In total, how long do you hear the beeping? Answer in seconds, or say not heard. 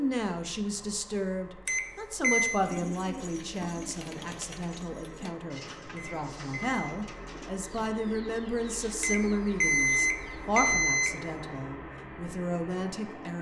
4 s.